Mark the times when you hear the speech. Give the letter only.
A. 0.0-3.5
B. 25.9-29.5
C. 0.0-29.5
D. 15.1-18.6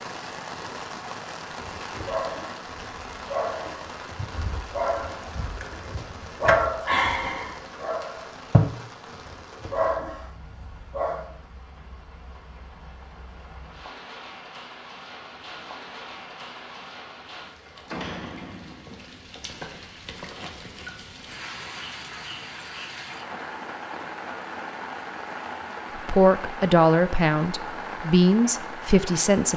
B.